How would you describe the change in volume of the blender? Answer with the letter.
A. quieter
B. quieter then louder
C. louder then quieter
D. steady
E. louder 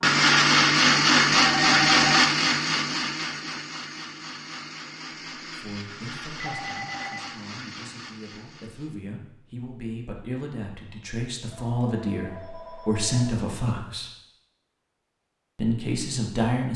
A.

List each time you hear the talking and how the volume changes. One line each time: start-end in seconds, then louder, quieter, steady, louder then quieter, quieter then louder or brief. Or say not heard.
5.5-14.1 louder
15.6-16.7 brief.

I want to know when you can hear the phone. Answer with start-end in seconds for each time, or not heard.
1.4-2.2, 6.4-7.2, 11.5-13.3.